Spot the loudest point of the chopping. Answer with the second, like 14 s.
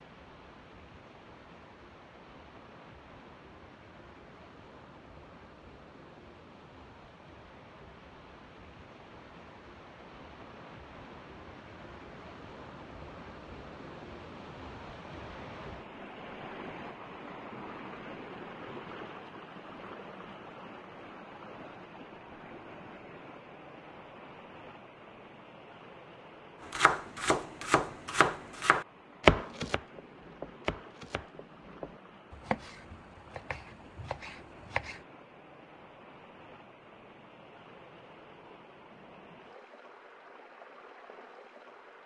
29 s.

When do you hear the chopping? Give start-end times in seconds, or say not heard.
26.7-35.0.